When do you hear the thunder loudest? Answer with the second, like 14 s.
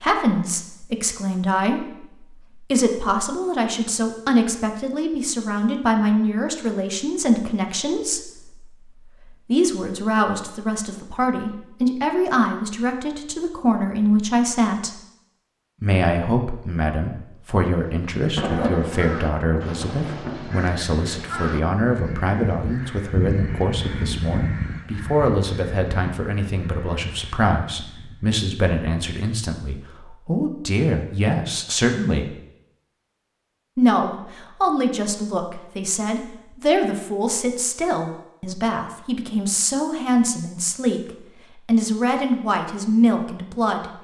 19 s.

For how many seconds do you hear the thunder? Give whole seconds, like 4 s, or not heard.
2 s.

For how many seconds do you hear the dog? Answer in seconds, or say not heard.
not heard.